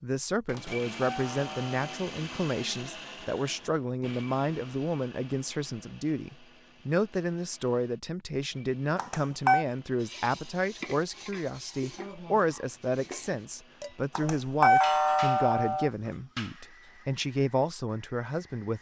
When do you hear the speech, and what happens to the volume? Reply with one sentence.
You can hear the speech from 0.0 to 18.7 s, at a steady volume.